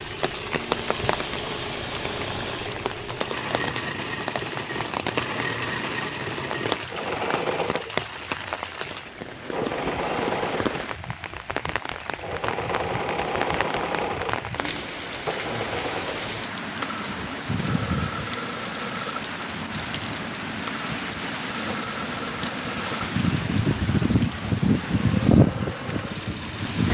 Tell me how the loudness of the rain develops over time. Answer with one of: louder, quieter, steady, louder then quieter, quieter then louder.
louder.